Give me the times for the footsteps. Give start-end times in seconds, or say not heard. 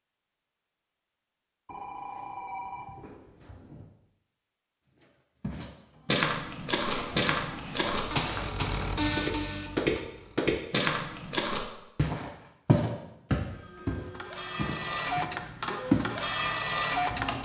5.0-16.1.